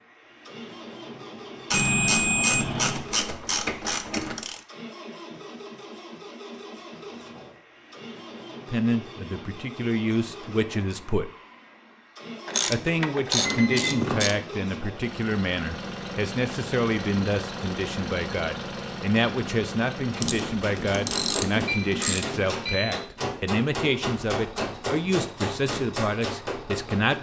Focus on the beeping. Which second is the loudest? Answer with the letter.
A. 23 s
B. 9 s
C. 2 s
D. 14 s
C.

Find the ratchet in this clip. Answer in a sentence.
The ratchet can be heard from 1.7 to 4.6 s, from 12.4 to 14.3 s and from 20.2 to 22.4 s.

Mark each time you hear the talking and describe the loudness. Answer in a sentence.
The talking can be heard briefly from 8.7 to 11.3 s; and from 12.7 to 27.1 s, at a steady volume.